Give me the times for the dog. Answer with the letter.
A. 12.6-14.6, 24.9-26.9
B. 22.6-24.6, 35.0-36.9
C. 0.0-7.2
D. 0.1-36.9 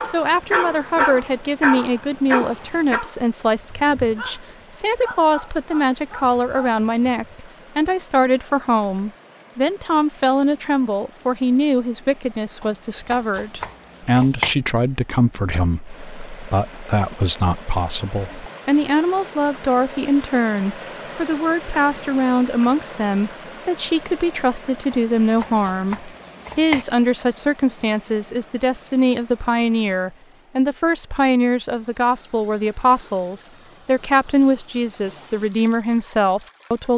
C.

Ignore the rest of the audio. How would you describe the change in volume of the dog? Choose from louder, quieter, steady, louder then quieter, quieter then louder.
quieter.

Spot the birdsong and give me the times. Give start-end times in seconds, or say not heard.
not heard.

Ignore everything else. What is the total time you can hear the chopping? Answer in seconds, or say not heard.
4 s.